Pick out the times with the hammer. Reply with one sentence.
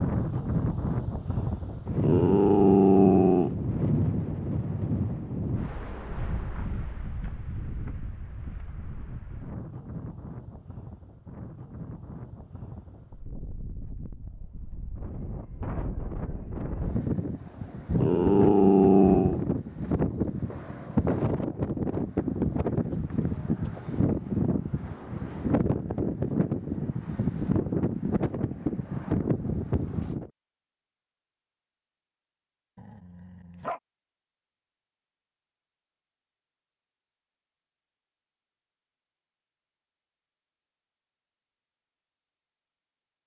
The hammer can't be heard in this clip.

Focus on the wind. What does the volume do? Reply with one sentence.
The loudness of the wind goes down, then up.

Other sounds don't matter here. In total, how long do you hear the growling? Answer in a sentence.
The growling can be heard for 4 seconds in total.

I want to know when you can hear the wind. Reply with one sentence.
You can hear the wind from 0.0 to 30.3 s.